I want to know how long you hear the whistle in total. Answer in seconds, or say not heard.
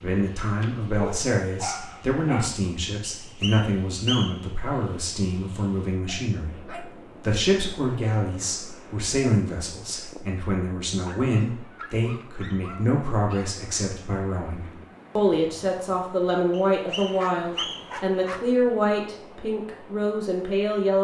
3 s.